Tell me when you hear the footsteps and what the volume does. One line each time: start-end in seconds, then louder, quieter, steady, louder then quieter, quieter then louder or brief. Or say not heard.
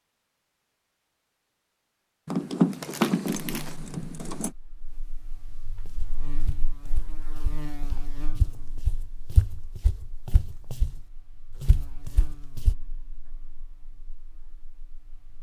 5.8-11.0 louder
11.6-12.8 brief.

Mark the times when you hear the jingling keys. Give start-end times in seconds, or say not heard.
2.2-4.5.